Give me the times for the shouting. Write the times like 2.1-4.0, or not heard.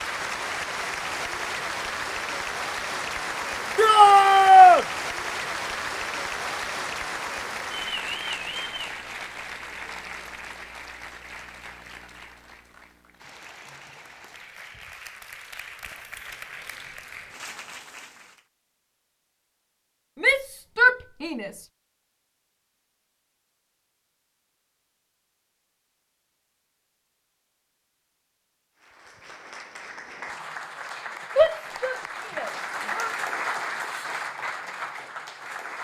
3.8-4.8, 20.2-21.6, 31.4-33.1.